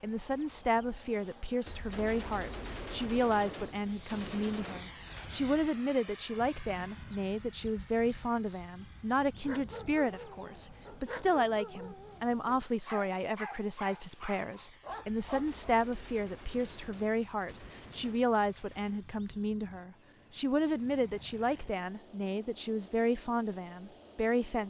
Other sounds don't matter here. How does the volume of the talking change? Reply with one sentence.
The loudness of the talking stays about the same.